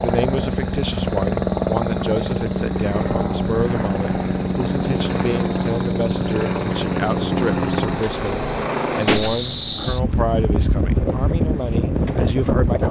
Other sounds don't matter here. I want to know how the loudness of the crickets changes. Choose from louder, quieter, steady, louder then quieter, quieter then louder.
louder.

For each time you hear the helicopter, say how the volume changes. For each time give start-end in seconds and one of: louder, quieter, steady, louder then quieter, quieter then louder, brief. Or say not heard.
0.0-12.6 quieter.